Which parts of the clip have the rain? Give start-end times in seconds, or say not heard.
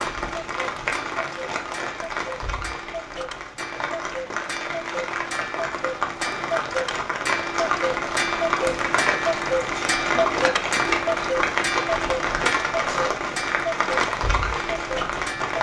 0.0-15.5.